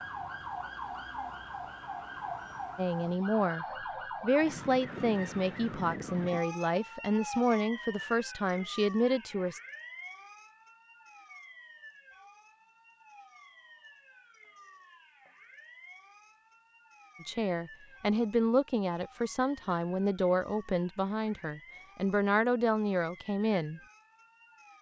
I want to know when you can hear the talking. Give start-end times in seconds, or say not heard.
2.8-9.6, 17.2-23.8.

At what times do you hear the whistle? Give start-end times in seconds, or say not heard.
not heard.